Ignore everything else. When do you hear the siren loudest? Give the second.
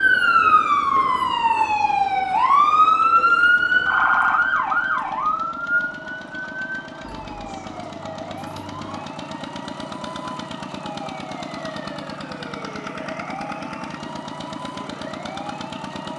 3 s.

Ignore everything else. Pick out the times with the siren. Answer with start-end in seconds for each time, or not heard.
0.0-16.1.